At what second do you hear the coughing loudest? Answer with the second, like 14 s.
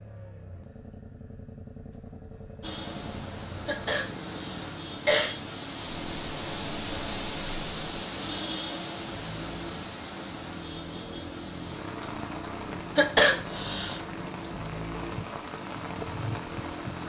13 s.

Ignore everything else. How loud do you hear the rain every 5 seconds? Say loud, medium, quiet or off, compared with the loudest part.
medium, loud, medium, loud.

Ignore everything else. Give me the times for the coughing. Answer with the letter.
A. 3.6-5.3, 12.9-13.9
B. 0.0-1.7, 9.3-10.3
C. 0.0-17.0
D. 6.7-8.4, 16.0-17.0
A.